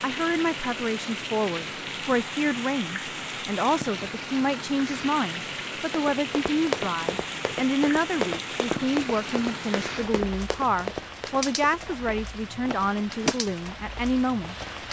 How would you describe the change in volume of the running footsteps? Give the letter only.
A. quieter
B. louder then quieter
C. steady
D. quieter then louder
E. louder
A.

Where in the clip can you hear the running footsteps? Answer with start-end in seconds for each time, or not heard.
5.8-13.6.